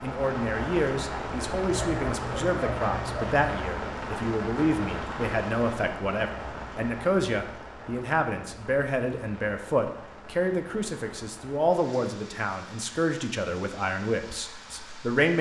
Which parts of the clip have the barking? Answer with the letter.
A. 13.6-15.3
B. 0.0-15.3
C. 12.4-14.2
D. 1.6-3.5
D.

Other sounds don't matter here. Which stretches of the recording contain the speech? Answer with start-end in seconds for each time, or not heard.
0.0-15.3.